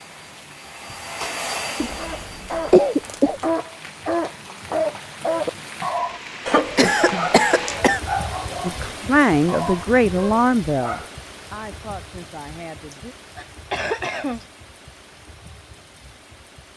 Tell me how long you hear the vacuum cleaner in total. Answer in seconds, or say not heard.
3 s.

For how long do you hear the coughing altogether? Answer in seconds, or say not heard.
5 s.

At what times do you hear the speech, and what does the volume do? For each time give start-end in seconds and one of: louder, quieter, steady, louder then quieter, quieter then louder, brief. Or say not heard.
8.6-13.2 quieter.